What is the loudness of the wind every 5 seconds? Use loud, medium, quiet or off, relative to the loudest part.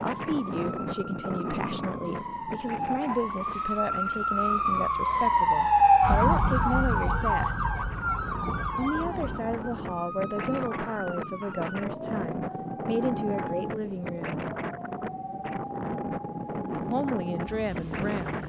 loud, medium, loud, loud.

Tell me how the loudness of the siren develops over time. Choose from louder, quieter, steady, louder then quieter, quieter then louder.
louder then quieter.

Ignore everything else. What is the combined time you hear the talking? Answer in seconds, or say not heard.
15 s.